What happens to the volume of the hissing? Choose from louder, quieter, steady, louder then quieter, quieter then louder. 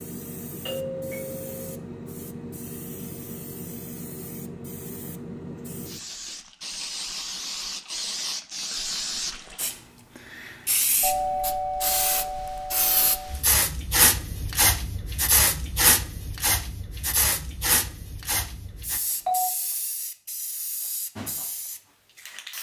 louder then quieter.